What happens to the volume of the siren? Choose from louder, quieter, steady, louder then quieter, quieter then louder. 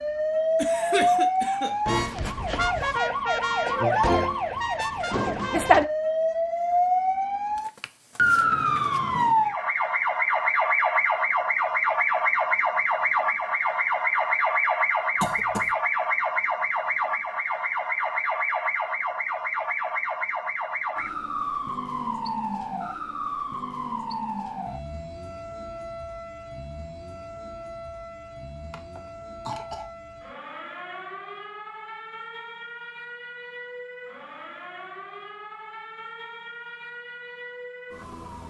quieter.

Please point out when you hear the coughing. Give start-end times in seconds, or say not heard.
0.6-1.8, 15.2-15.8, 28.7-29.9.